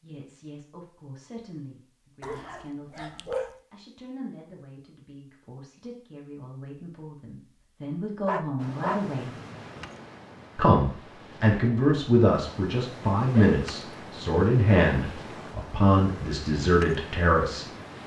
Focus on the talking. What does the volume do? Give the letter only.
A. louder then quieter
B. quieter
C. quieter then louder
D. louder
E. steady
D.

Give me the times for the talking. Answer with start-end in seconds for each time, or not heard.
0.0-9.3, 10.6-17.6.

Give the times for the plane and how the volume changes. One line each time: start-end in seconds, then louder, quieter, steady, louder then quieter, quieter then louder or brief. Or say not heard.
not heard.